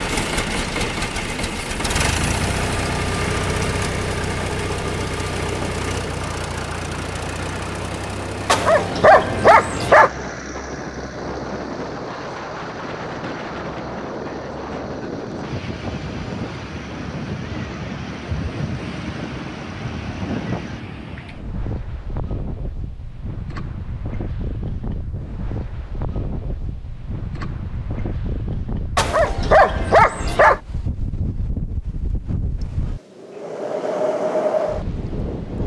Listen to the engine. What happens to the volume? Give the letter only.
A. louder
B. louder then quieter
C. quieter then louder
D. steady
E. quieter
E.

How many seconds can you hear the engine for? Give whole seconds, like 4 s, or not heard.
21 s.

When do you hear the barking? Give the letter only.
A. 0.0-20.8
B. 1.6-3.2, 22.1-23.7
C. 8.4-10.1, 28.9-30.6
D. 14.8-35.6
C.